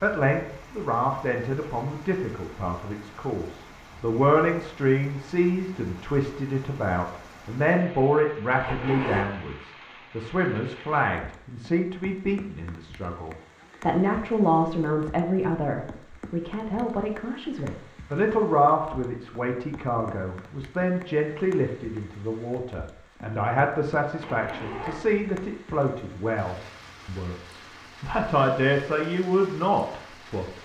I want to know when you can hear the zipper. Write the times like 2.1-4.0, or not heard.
8.6-9.2, 24.2-25.2.